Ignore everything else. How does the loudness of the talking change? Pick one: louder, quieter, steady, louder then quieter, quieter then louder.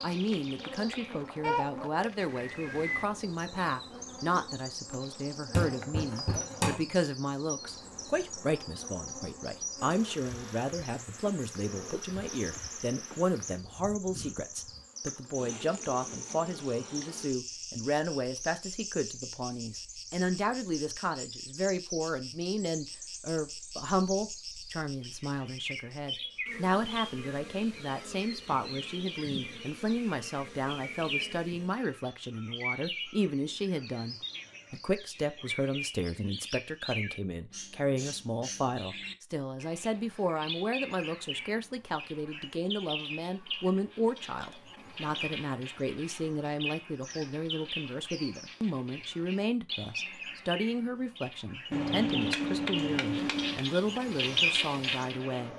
steady.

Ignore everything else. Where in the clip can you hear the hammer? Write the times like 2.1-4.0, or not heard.
5.5-7.0, 51.7-53.6.